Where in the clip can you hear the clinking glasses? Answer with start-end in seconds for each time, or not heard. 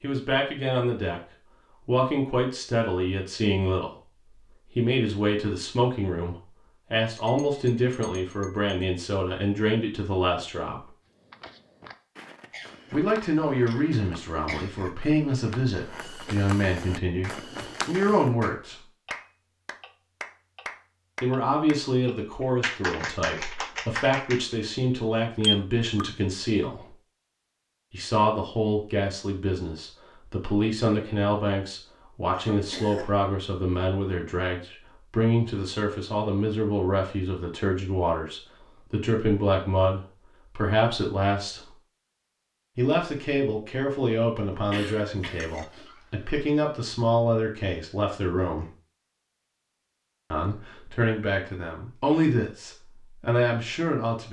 7.0-8.8, 25.1-26.1, 45.4-46.5.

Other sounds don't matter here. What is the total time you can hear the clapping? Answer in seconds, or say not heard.
7 s.